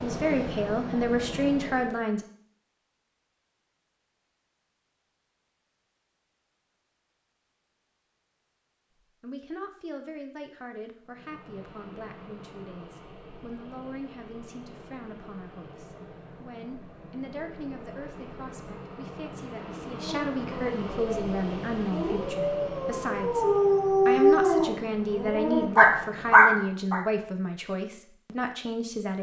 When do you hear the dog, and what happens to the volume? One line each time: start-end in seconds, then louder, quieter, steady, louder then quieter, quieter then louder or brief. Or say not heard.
19.9-27.0 louder.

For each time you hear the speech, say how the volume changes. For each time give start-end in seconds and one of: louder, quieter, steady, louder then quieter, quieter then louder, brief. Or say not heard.
0.0-2.2 brief
9.2-29.1 louder.